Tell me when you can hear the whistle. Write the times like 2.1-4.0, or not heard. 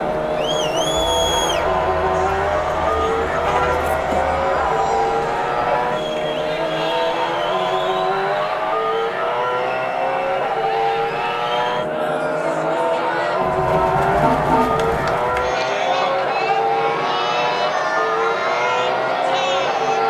not heard.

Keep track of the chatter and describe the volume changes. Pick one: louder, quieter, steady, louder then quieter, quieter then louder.
quieter then louder.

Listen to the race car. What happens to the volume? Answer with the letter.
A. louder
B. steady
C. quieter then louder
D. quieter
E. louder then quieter
B.